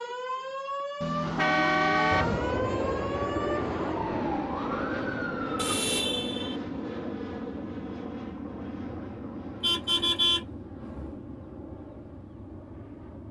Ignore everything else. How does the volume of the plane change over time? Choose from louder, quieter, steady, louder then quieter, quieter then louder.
quieter.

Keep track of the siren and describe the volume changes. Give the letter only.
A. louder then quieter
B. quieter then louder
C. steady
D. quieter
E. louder
C.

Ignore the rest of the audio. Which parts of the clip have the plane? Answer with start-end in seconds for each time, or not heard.
2.1-13.2.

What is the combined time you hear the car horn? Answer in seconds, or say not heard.
4 s.